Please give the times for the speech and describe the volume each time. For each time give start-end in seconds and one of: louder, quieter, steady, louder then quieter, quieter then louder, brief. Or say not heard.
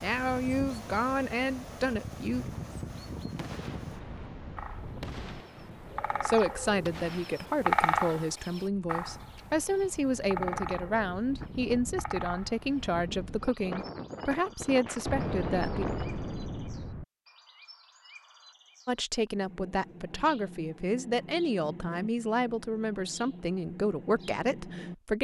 0.0-2.5 brief
6.2-15.8 steady
18.9-25.1 steady.